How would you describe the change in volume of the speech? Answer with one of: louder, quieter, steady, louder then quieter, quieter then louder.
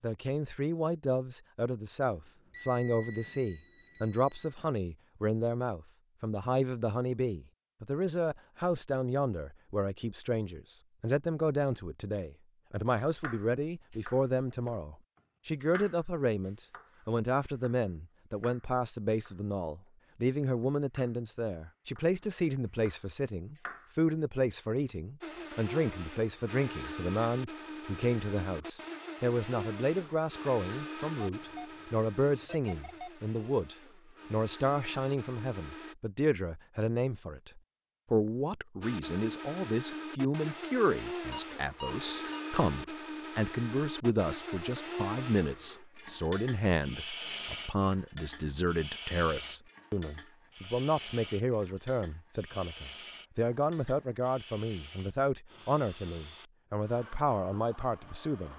steady.